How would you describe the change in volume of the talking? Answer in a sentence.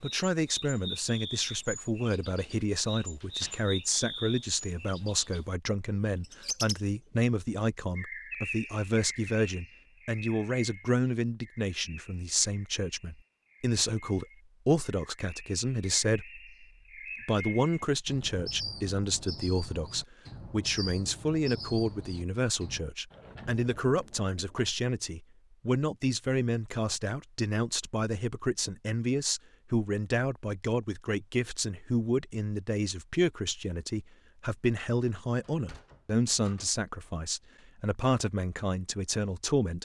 The volume of the talking stays about the same.